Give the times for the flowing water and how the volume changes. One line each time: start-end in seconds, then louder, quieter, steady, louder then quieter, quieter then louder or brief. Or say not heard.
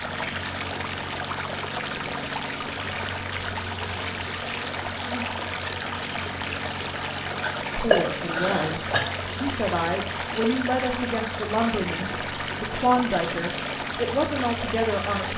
0.0-15.3 steady.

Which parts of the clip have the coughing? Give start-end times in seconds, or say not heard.
7.4-9.0.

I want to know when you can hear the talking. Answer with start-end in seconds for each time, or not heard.
7.8-15.3.